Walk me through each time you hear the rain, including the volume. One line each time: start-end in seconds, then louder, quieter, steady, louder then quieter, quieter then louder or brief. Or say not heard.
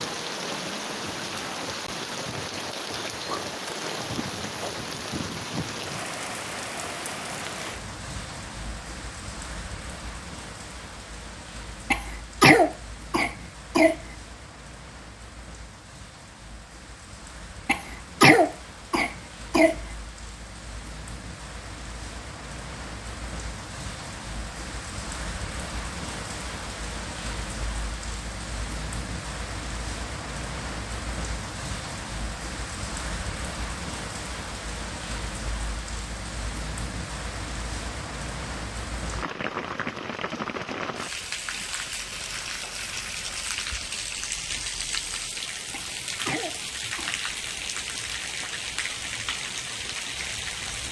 0.0-50.8 quieter then louder.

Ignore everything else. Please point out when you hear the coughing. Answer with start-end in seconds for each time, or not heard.
11.9-13.9, 17.6-19.8, 45.7-47.1.